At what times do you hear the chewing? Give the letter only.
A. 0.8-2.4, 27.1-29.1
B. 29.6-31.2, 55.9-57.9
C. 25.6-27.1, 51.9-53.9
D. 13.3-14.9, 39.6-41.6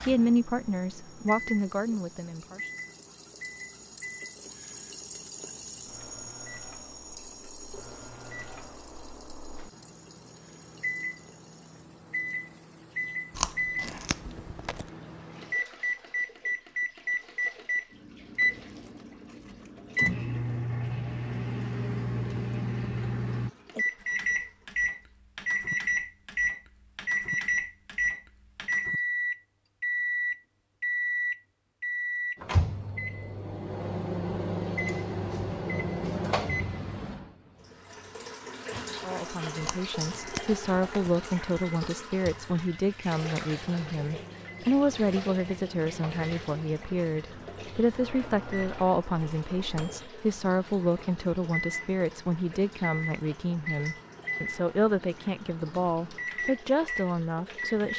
D.